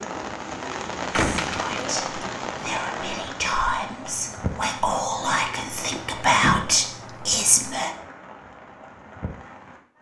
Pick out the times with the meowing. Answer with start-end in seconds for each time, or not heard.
not heard.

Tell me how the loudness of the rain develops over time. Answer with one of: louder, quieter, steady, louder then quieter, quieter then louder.
quieter.